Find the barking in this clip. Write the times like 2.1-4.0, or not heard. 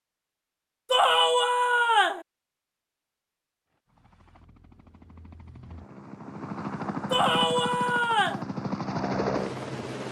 not heard.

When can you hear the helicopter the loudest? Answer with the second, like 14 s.
9 s.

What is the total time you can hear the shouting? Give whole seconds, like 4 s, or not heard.
3 s.